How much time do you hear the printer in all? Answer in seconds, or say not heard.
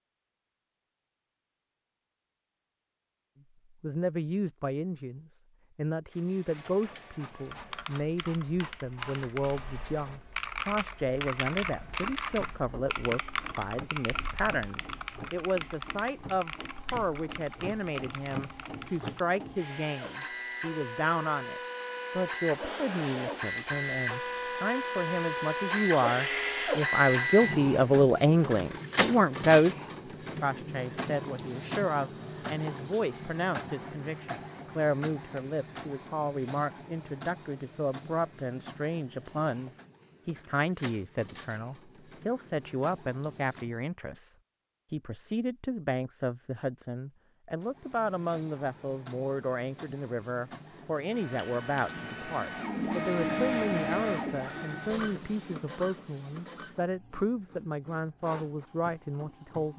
50 s.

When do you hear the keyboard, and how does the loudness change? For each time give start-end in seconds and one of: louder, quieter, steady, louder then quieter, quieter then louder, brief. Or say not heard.
7.5-19.2 louder then quieter.